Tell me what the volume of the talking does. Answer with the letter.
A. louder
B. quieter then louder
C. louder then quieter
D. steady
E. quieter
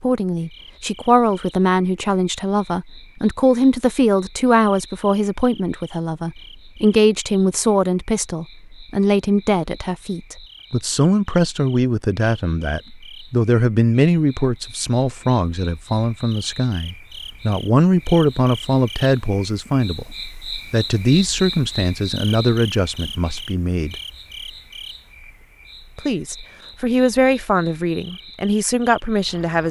D.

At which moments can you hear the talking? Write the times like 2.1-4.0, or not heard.
0.0-20.1, 20.7-23.9, 25.9-29.6.